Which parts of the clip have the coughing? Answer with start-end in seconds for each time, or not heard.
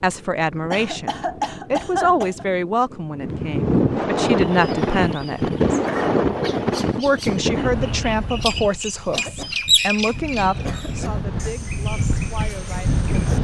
0.7-2.5, 5.8-6.7, 9.1-11.2.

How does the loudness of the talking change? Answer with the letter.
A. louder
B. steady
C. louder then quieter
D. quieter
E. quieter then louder
D.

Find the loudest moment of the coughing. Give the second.
2 s.